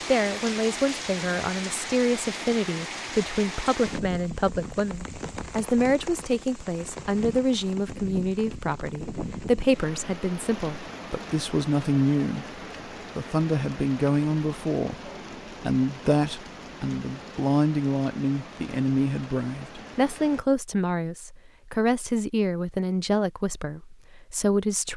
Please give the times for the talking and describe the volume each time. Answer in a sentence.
You can hear the talking from 0.1 to 12.4 s, at a steady volume; and from 13.2 to 24.9 s, at a steady volume.